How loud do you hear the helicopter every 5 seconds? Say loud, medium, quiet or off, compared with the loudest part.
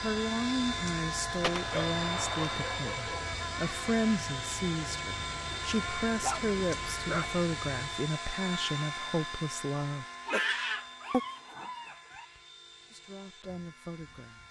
loud, loud, quiet.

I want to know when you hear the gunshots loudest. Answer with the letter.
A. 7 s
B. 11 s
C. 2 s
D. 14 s
C.